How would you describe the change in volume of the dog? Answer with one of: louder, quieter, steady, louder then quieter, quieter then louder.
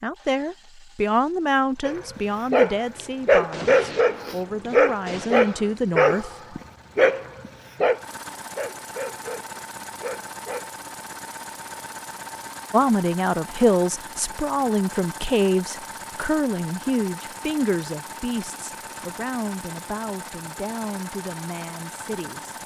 quieter.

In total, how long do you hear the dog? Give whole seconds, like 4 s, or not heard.
9 s.